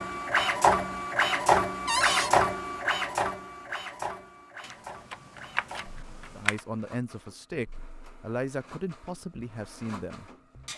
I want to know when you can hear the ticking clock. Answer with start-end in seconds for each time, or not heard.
not heard.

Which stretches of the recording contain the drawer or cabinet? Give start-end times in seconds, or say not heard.
1.9-2.3.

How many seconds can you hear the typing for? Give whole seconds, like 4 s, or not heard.
2 s.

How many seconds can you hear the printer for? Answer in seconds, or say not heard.
11 s.